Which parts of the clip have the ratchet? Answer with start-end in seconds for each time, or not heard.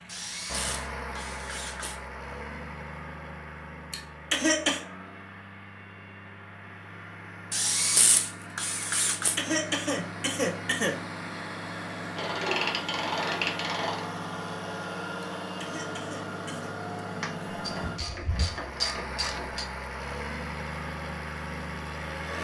0.1-2.0, 7.5-9.4, 12.2-14.1, 17.2-19.6.